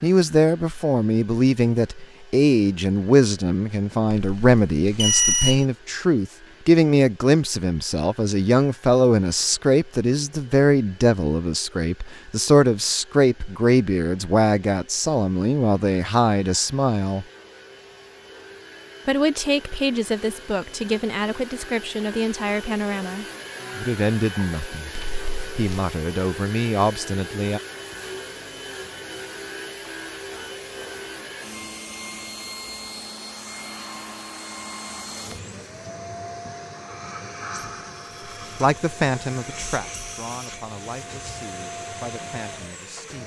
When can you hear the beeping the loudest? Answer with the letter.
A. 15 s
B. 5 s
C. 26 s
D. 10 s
B.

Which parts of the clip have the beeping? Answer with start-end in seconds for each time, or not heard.
4.1-5.7, 24.9-25.8.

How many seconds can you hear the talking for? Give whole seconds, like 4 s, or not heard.
30 s.